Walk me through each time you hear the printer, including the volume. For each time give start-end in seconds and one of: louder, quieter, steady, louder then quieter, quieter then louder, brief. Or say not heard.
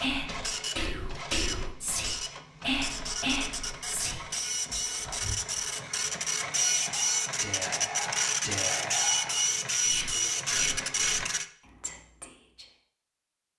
0.0-11.4 louder.